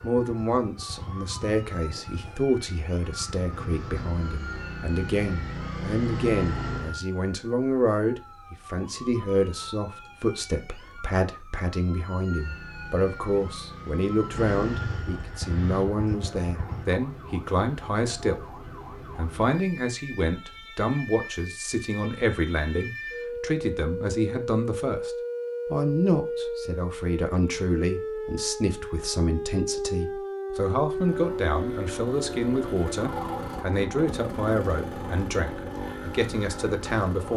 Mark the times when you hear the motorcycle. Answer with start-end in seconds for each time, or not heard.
0.0-7.0, 12.2-16.9, 30.9-37.3.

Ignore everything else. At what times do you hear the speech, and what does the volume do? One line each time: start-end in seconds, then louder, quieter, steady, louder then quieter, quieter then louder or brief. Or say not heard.
0.0-37.3 steady.